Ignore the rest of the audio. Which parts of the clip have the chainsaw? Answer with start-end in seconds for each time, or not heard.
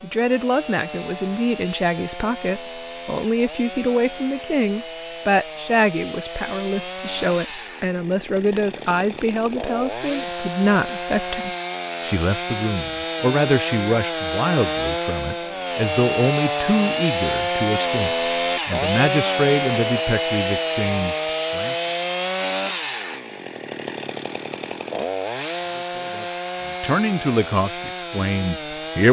0.0-29.0.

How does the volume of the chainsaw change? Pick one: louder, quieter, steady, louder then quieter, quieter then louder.
louder then quieter.